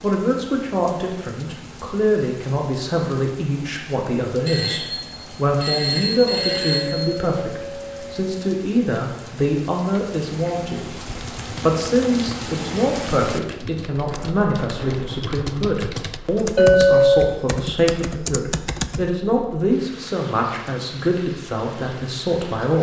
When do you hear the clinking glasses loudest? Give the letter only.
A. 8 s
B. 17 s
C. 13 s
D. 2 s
B.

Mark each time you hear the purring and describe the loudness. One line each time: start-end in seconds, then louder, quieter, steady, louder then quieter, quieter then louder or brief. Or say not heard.
not heard.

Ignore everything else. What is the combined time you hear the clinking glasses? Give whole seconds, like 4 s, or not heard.
3 s.